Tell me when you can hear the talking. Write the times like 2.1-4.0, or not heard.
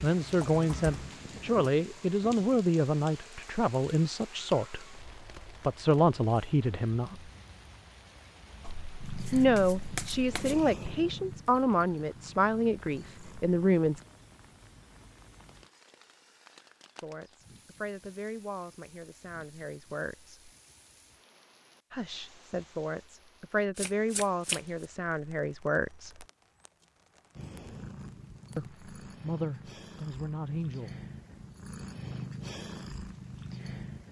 0.0-7.3, 9.3-14.0, 17.0-20.5, 21.9-26.2, 28.6-30.9.